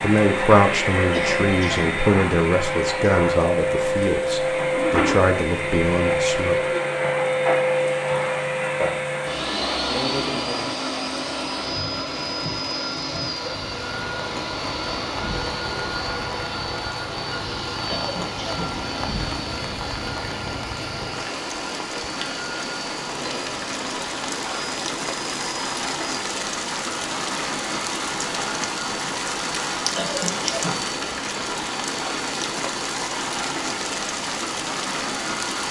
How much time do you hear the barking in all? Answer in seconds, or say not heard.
not heard.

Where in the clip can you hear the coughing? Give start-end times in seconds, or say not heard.
1.1-1.9, 17.9-18.8, 29.9-30.8.